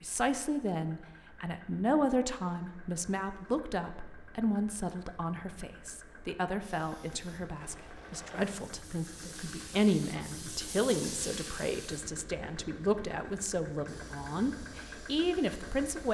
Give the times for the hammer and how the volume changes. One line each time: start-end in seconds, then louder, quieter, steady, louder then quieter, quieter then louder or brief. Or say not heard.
not heard.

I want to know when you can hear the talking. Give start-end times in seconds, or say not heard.
0.0-16.1.